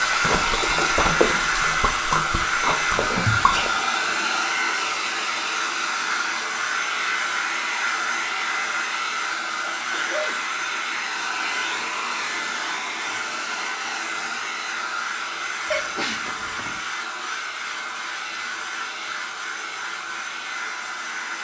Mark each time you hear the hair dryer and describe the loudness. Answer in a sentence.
The hair dryer can be heard from 0.0 to 21.4 s, getting quieter.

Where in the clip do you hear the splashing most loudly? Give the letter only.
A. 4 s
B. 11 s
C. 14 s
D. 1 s
D.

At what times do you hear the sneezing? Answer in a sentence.
The sneezing can be heard from 3.0 to 4.1 s, from 9.6 to 10.4 s and from 15.7 to 16.8 s.